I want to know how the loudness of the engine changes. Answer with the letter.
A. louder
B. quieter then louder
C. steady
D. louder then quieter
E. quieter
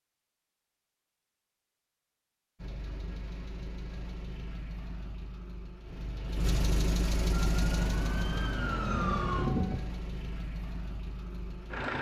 D.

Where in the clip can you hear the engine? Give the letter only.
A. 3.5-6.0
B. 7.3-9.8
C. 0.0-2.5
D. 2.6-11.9
D.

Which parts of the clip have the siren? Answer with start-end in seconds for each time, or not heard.
7.3-9.8.